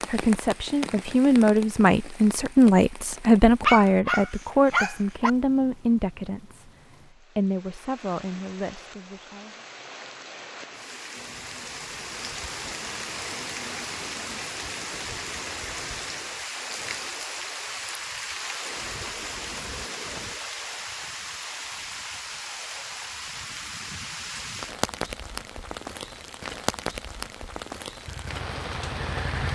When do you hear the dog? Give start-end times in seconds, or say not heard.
3.6-5.3.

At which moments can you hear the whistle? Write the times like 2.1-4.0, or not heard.
not heard.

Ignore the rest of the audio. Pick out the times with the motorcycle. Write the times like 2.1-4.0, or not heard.
28.1-29.5.